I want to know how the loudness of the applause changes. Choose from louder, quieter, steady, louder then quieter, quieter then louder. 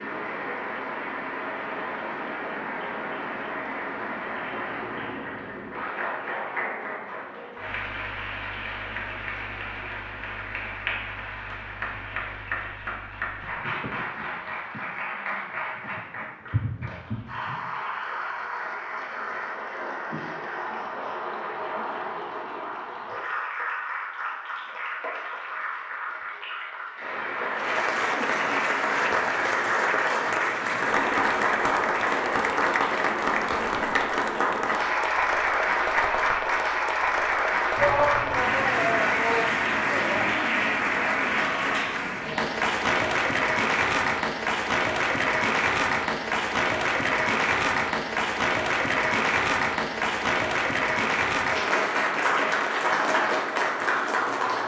louder.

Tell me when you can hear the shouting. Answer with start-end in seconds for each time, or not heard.
37.8-40.4.